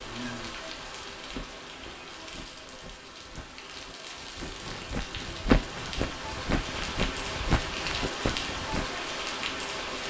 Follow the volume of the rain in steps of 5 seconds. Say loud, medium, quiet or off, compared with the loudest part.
medium, loud.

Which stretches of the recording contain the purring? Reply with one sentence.
The purring can't be heard in this clip.